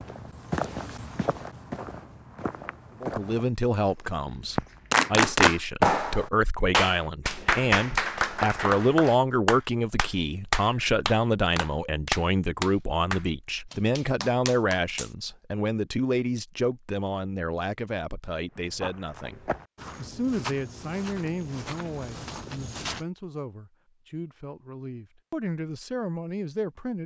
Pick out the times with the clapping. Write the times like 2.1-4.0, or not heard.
4.9-15.2.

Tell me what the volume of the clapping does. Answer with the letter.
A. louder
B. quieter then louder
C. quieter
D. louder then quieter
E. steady
C.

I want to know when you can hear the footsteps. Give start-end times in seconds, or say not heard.
0.0-5.0, 18.5-23.1.